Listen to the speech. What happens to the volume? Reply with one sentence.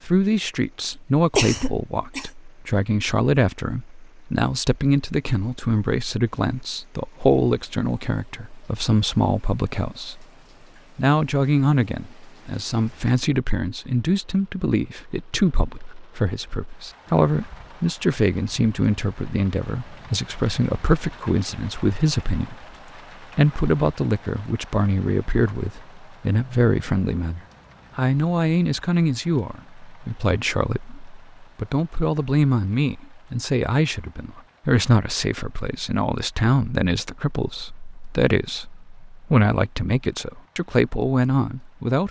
The volume of the speech stays about the same.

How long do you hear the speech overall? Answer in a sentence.
You can hear the speech for 41 seconds altogether.